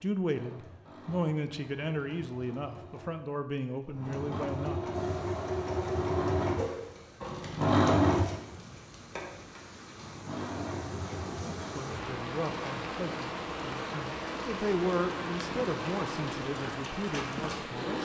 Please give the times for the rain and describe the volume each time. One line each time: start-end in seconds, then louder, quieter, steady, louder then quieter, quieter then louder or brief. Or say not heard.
4.9-17.9 louder.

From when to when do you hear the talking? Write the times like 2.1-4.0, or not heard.
0.0-5.0, 11.4-17.9.